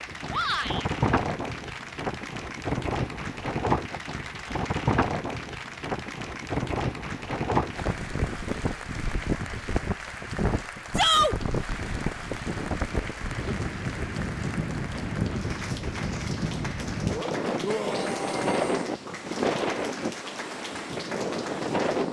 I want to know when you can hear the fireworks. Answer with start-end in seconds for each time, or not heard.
not heard.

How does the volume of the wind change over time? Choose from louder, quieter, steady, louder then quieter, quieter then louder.
steady.